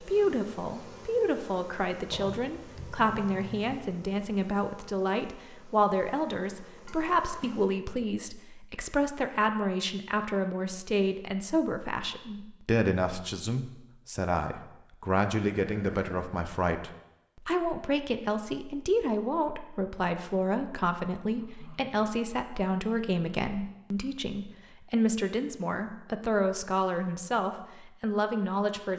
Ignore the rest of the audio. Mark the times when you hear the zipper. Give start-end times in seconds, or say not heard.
not heard.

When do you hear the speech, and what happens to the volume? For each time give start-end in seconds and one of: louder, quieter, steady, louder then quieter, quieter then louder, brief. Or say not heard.
0.0-28.9 steady.